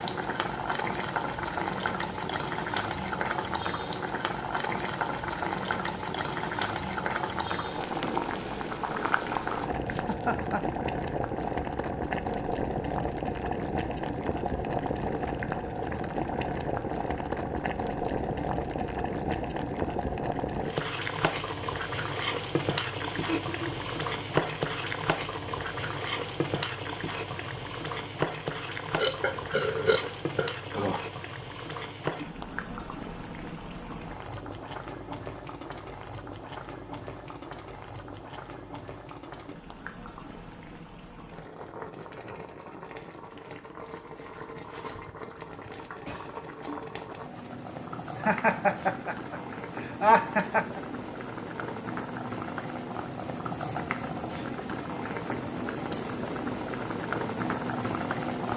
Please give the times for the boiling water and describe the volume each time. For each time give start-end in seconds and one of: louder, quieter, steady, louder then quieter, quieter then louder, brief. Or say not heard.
0.0-58.5 quieter then louder.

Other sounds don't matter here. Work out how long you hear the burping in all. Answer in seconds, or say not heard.
2 s.